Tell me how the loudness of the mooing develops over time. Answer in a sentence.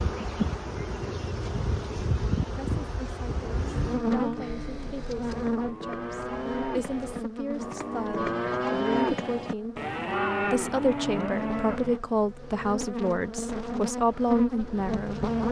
The loudness of the mooing goes up.